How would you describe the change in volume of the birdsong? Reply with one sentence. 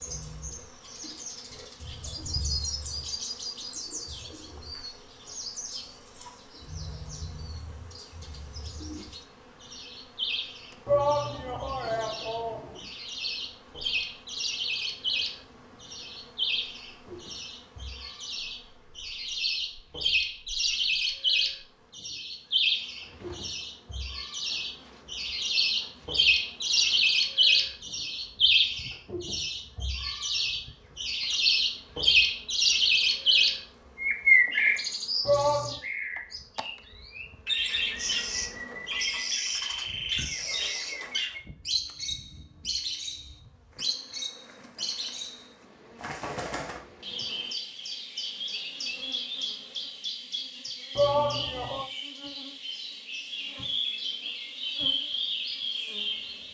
The loudness of the birdsong goes up, then down.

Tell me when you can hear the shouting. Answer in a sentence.
You can hear the shouting from 10.8 to 12.8 s, from 35.2 to 35.8 s and from 51.0 to 51.9 s.